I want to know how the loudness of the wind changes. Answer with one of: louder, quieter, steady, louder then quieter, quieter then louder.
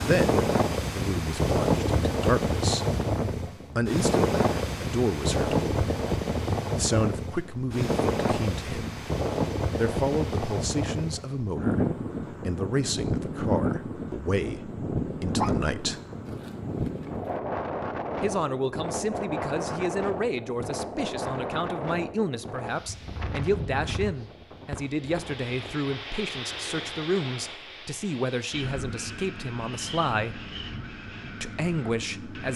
quieter.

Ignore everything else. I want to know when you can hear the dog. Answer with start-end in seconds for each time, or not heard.
15.3-17.4.